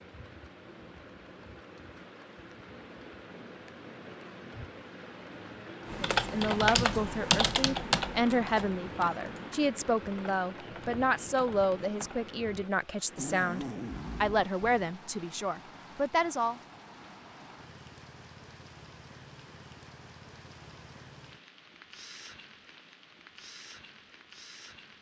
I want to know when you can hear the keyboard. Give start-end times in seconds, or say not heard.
5.8-12.3.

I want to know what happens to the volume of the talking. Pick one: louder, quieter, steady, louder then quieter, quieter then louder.
steady.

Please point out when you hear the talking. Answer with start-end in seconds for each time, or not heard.
6.1-16.6.